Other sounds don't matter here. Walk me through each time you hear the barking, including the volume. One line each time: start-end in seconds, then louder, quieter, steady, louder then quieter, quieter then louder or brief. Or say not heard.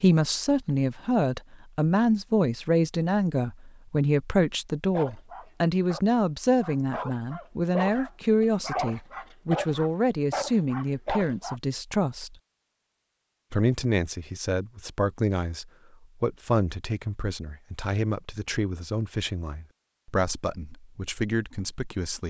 4.9-11.6 louder.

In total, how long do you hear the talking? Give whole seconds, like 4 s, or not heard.
21 s.